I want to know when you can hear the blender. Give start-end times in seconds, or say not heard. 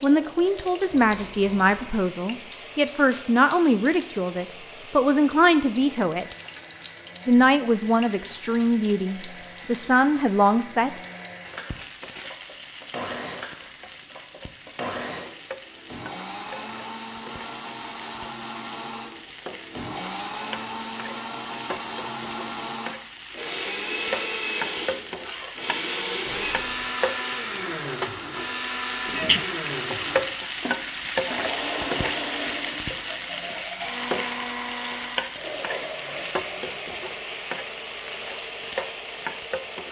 0.0-39.8.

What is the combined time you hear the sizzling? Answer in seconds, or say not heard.
40 s.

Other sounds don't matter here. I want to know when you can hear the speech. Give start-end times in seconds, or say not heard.
0.0-6.2, 7.2-11.0.